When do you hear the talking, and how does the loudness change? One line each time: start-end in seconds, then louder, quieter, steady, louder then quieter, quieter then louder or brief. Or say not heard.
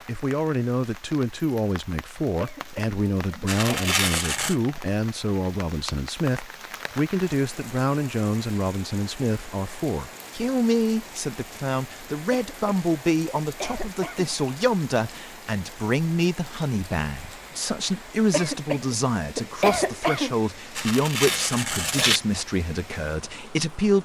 0.1-23.9 steady.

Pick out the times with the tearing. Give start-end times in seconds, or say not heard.
3.5-4.5, 20.8-22.2.